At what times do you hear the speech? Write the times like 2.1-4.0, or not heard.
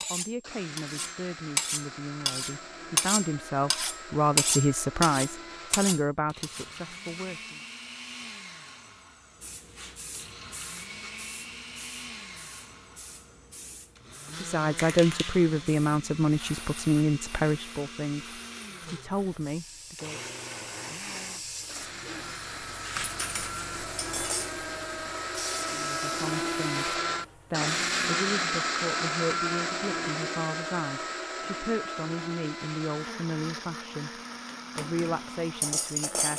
0.1-7.6, 14.4-20.2, 25.6-36.3.